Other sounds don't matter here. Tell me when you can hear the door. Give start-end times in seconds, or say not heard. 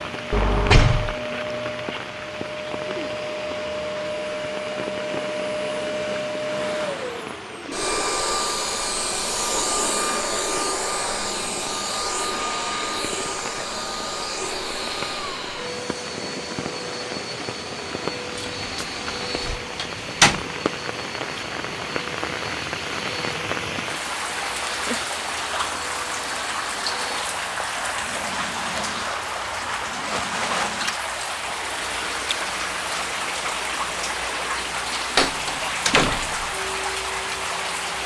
0.3-1.1, 18.4-20.4, 35.1-36.5.